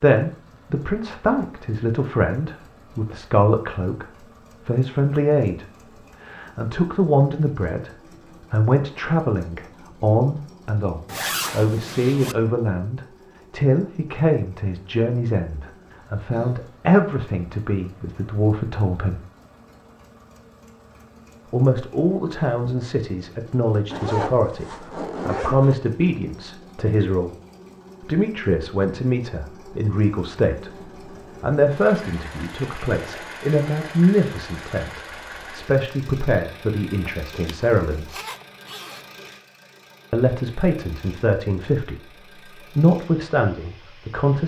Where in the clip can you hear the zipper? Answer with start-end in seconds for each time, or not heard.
11.1-12.3, 23.9-25.8, 37.5-39.3.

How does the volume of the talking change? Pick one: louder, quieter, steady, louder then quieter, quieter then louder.
steady.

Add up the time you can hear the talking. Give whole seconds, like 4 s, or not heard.
38 s.